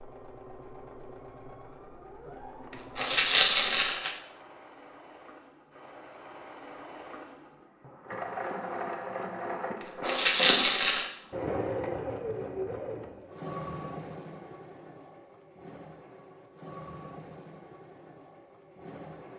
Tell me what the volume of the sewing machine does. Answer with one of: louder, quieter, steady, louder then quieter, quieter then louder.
louder then quieter.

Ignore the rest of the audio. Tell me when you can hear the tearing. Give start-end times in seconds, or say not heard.
3.0-4.1, 10.1-11.1.